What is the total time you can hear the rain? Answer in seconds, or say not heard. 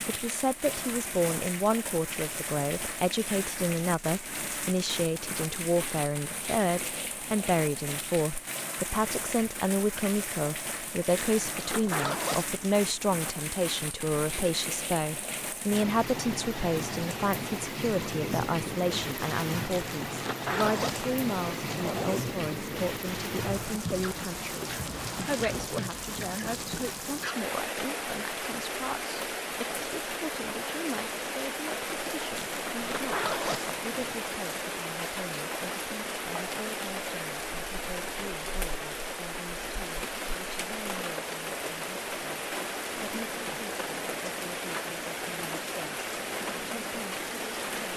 48 s.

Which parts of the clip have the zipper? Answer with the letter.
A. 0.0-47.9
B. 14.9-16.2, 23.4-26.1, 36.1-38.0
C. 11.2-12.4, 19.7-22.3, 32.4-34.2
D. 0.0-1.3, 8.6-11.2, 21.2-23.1
C.